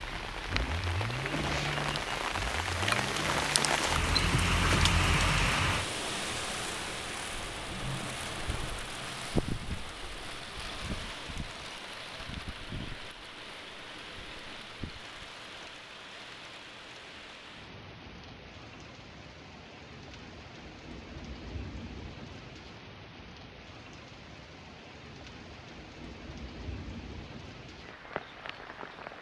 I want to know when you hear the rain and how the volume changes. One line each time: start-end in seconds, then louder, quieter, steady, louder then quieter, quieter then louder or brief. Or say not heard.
0.0-29.1 quieter.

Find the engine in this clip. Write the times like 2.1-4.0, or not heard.
0.0-3.9.